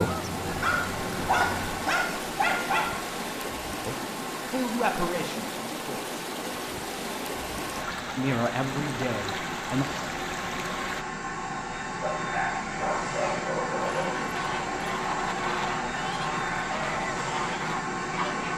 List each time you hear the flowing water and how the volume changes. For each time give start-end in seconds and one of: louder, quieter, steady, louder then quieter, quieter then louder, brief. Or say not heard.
0.0-11.1 steady.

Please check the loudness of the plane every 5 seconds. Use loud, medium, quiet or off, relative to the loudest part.
medium, medium, loud, loud.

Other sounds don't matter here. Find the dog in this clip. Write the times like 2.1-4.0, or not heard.
0.5-2.9, 12.0-14.1.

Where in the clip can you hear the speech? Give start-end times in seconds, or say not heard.
4.5-6.2, 8.2-9.8.